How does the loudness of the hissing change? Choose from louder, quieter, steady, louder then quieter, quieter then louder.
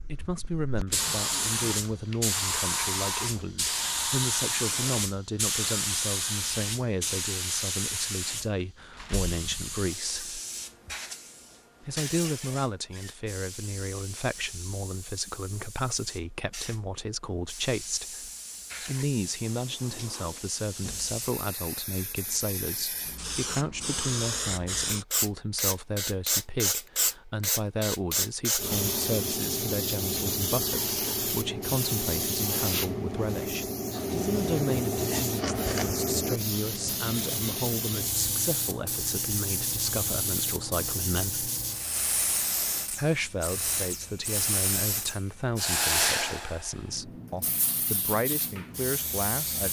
quieter then louder.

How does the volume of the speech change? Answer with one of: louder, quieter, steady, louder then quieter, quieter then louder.
steady.